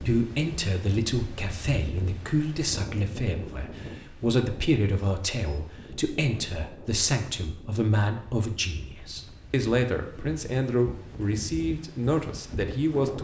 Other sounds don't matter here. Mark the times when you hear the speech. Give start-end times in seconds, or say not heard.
0.0-13.1.